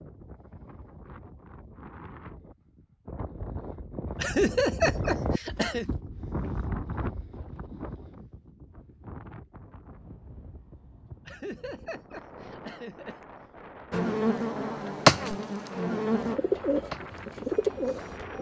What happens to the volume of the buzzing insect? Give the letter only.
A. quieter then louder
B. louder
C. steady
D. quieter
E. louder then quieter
E.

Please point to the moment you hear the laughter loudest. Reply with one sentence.
The volume of the laughter peaks at 5 seconds.